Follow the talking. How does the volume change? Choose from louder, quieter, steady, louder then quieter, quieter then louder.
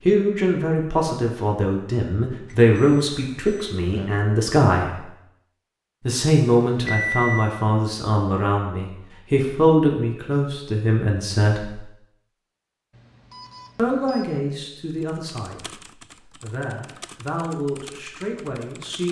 quieter.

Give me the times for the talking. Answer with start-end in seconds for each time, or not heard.
0.1-5.0, 6.0-11.8, 13.8-19.0.